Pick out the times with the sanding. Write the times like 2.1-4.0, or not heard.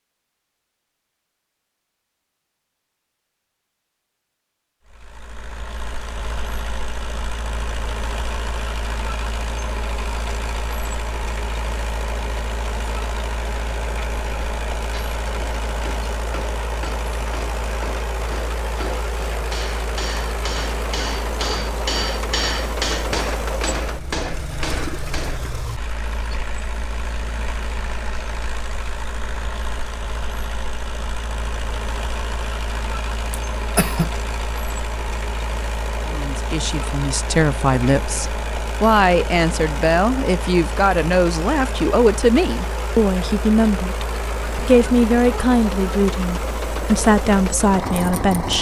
not heard.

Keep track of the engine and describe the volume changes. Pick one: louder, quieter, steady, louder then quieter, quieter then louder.
steady.